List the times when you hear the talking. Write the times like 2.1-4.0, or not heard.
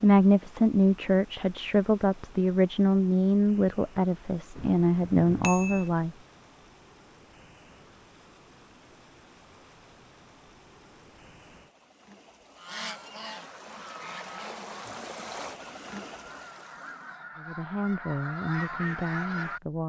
0.0-6.1, 17.4-19.8.